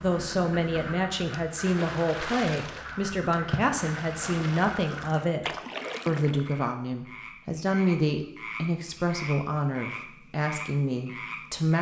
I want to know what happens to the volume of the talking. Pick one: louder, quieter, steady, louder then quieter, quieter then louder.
steady.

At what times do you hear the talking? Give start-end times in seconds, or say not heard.
0.0-11.7.